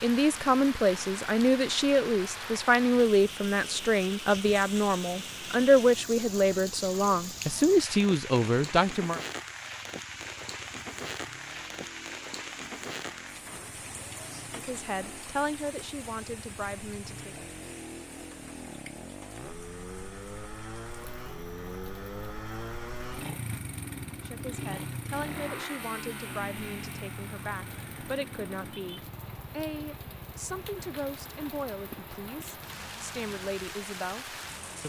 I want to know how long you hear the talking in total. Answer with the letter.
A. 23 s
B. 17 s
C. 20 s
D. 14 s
A.